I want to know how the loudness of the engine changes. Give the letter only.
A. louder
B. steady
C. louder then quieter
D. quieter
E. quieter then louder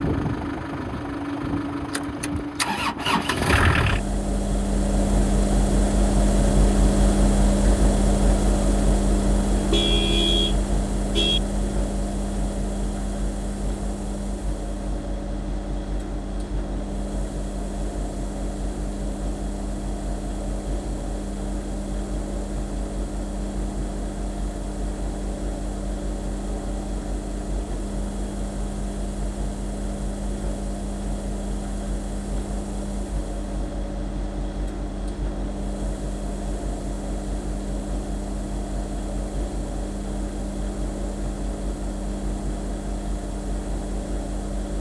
D.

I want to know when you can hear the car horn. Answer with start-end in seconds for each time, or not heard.
9.5-11.4.